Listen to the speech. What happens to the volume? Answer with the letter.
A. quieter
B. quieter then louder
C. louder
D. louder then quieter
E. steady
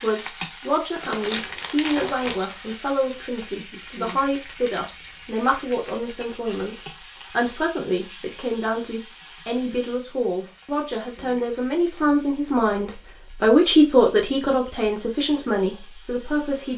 C.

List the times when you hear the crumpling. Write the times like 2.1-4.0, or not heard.
1.0-2.5.